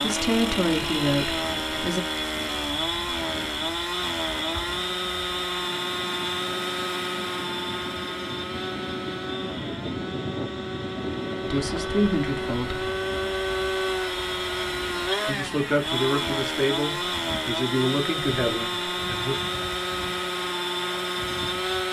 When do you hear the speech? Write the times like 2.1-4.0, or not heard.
0.0-2.0, 11.4-12.9, 15.2-19.4.